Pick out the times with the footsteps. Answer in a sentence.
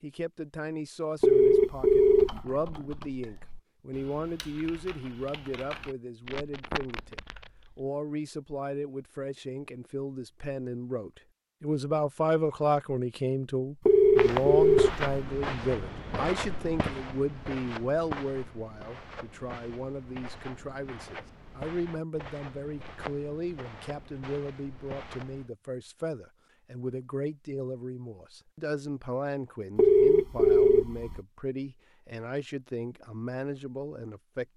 The footsteps can be heard from 14.2 to 25.5 s.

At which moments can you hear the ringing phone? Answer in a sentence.
You can hear the ringing phone from 1.2 to 2.4 s, from 13.8 to 15.0 s and from 29.8 to 31.2 s.